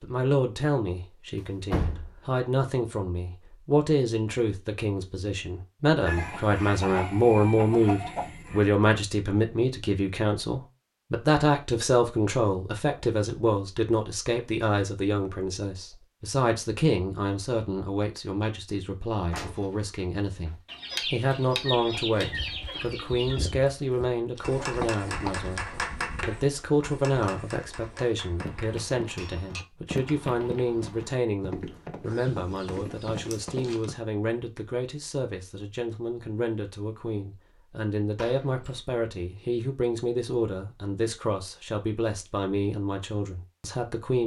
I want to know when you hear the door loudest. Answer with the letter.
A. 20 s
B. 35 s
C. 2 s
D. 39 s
C.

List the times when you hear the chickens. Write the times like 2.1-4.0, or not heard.
6.0-8.7, 20.6-23.6, 32.0-33.9.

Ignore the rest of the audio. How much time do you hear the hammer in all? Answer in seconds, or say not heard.
5 s.